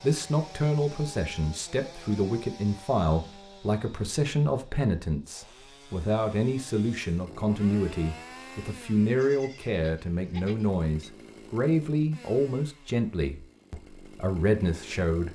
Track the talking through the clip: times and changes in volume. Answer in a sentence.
You can hear the talking from 0.0 to 15.2 s, at a steady volume.